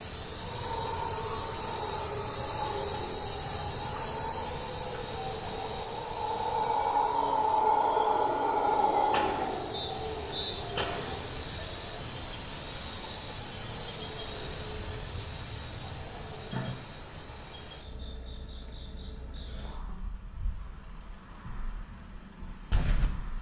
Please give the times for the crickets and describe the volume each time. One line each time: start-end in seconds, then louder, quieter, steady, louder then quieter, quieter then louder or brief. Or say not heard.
0.0-23.3 quieter.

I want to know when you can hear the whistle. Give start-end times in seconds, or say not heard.
9.7-10.6.